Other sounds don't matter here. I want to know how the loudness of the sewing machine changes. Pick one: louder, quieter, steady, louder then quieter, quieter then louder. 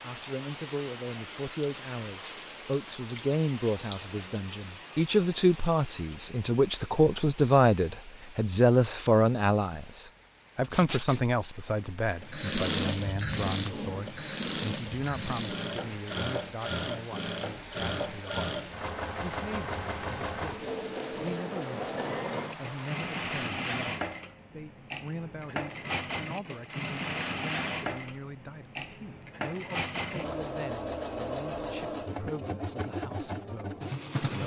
steady.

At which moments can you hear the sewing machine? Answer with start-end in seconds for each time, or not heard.
12.2-34.4.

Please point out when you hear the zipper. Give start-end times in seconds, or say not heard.
10.6-11.2.